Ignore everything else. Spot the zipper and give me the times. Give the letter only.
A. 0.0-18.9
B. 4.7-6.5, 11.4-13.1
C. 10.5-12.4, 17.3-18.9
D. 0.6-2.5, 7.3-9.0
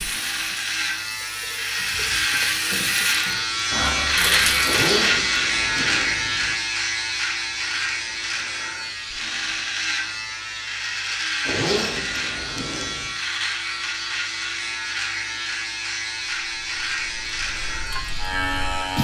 B.